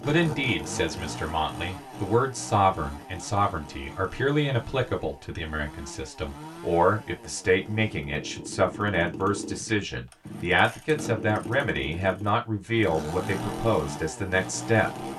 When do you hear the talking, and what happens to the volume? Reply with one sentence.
The talking can be heard from 0.0 to 15.1 s, at a steady volume.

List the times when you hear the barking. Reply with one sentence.
You can't hear the barking here.